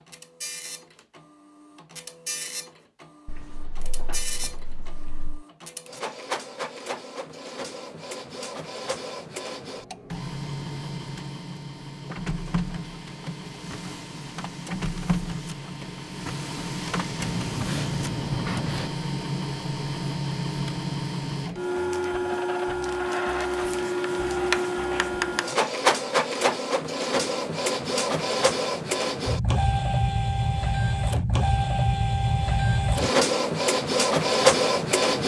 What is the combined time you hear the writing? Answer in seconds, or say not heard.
5 s.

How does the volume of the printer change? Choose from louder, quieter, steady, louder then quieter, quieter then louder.
louder.